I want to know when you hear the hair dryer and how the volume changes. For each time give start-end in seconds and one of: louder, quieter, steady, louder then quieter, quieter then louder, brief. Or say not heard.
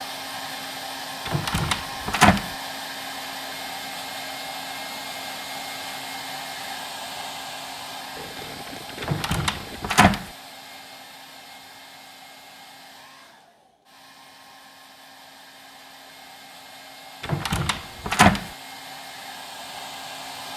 0.0-20.5 quieter then louder.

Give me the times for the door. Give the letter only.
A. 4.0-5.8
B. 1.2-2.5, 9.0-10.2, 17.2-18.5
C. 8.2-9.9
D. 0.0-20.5
B.